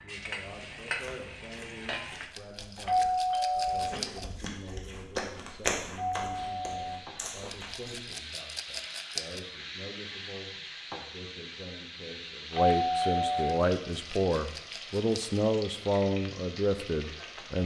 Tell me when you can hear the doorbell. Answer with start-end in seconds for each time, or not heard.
2.9-4.0, 6.0-7.0, 12.5-13.6.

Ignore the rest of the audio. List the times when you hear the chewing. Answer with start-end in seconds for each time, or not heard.
0.5-8.0.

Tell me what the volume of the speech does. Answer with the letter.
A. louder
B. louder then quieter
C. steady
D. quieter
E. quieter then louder
A.